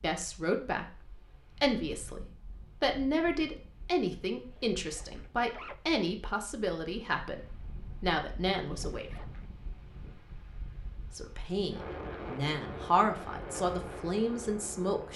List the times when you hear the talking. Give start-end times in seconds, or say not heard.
0.0-9.2, 11.1-15.1.